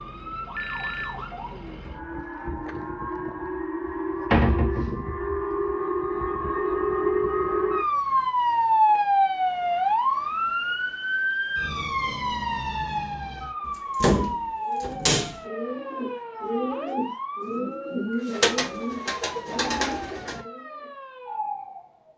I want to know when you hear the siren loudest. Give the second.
9 s.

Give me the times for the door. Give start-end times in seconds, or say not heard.
3.9-5.0, 13.7-15.4.